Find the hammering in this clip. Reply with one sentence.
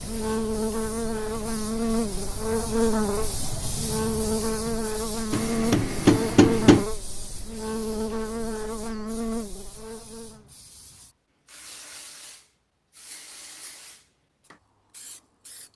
You can hear the hammering from 5.3 to 6.8 s.